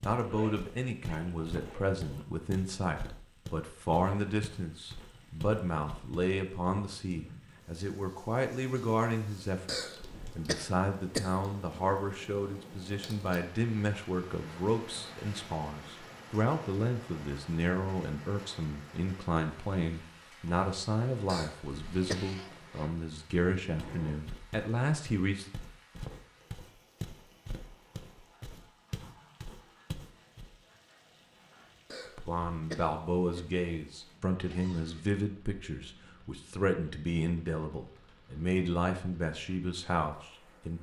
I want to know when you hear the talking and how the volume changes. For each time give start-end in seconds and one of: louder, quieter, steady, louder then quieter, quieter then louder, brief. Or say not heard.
0.1-25.5 steady
32.1-40.7 steady.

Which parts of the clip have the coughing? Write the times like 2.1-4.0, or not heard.
9.7-11.3, 21.2-22.2, 31.9-33.4.